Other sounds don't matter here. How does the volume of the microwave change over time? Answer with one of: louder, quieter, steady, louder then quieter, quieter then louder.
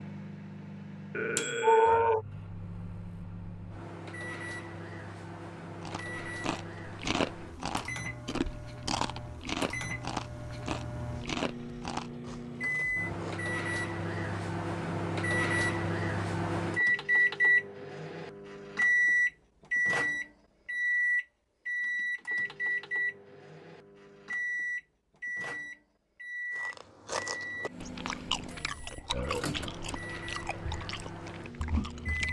louder then quieter.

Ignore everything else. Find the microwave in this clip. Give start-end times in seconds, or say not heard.
0.0-32.2.